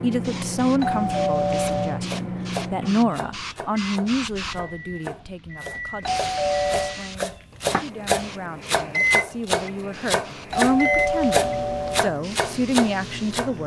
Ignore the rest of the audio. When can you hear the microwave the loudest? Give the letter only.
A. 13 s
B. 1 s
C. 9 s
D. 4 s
C.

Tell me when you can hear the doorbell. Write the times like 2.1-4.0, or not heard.
0.8-2.0, 6.0-7.0, 10.5-12.1.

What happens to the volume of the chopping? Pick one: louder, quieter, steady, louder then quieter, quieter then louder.
louder.